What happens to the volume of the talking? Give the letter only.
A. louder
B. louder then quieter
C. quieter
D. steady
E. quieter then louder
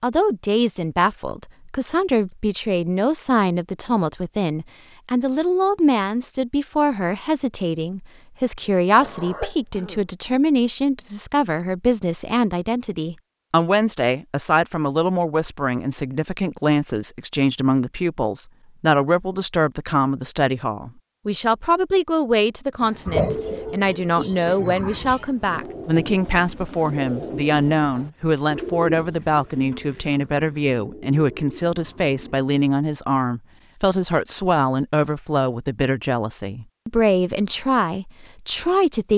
D.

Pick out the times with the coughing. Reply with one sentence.
You can hear the coughing from 9.0 to 10.1 s and from 23.1 to 25.2 s.